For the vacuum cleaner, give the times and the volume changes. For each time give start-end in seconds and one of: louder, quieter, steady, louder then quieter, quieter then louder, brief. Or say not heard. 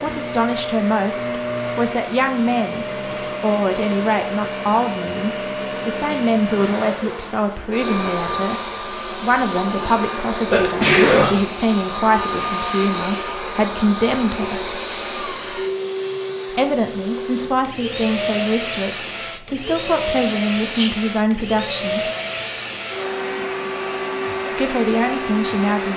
0.0-25.9 steady.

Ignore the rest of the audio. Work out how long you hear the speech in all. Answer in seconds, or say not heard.
22 s.